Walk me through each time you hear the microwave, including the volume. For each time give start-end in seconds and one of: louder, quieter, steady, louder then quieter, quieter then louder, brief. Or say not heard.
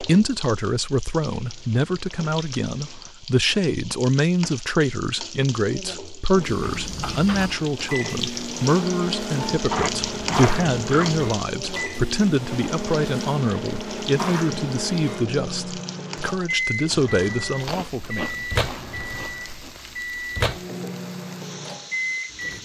6.3-22.6 steady.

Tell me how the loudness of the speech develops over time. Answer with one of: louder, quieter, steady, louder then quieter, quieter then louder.
steady.